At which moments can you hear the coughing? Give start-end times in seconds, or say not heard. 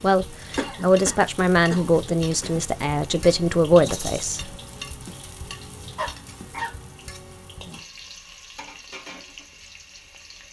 0.6-2.5, 6.0-6.8.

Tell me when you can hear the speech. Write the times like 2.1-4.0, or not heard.
0.0-4.5.